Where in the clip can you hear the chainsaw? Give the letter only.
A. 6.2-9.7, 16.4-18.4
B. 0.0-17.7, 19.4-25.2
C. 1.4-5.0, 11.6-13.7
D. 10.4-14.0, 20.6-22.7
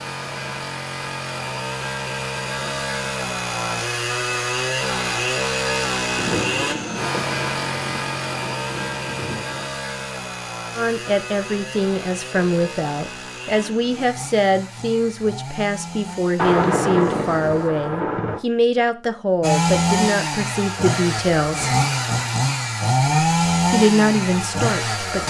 B.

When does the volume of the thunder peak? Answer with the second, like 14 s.
17 s.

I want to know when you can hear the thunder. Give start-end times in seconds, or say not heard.
6.2-9.7, 16.4-18.4.